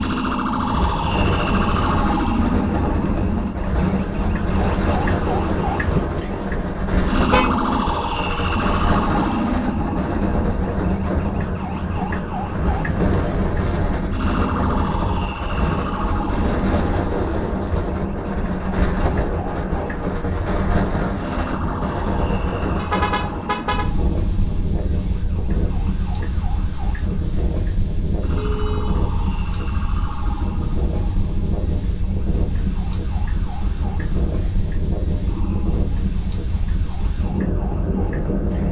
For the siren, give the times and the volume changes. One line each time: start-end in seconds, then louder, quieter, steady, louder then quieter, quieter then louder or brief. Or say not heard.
0.0-38.6 quieter.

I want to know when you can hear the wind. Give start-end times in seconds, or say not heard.
0.0-38.6.